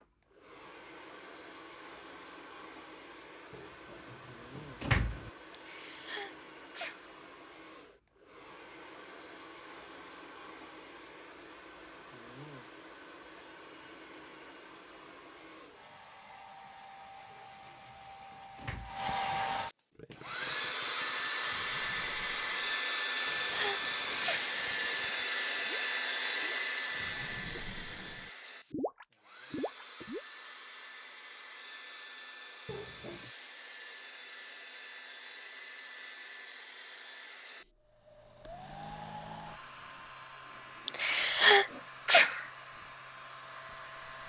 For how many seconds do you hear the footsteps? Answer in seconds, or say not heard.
not heard.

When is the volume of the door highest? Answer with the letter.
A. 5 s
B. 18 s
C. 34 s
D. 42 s
A.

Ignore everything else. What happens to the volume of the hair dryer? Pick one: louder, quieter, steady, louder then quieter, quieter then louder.
louder then quieter.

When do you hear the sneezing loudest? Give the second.
42 s.